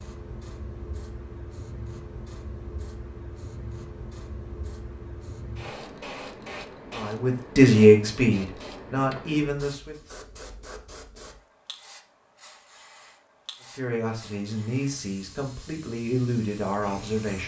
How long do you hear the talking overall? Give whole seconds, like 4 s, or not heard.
7 s.